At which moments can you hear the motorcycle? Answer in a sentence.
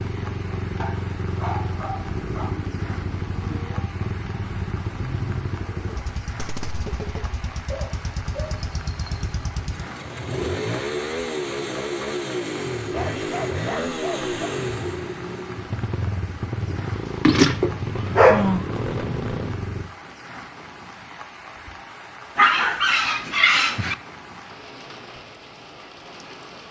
The motorcycle can be heard from 0.0 to 19.9 s.